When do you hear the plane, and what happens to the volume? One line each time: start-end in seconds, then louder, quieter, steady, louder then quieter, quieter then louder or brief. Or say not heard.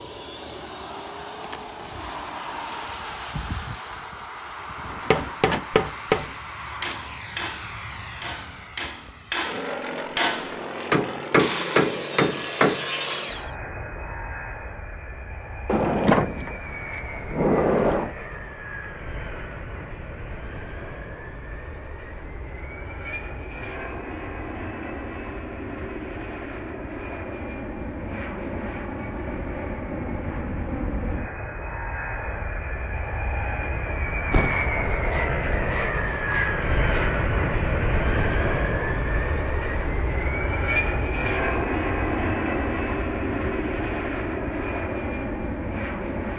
0.0-46.3 louder.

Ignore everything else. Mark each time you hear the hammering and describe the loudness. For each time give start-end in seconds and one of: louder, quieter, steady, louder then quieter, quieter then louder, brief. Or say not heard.
4.8-12.8 quieter then louder.